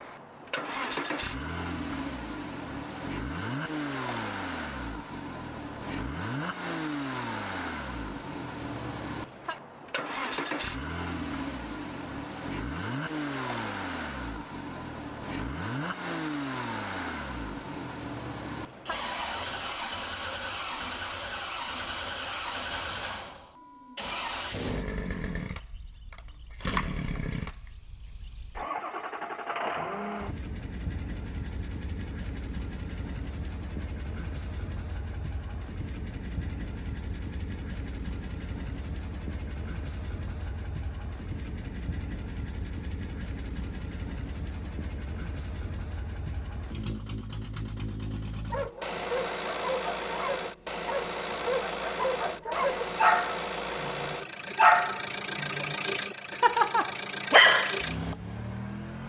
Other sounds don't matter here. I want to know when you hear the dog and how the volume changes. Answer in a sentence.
You can hear the dog from 48.5 to 57.8 s, getting louder.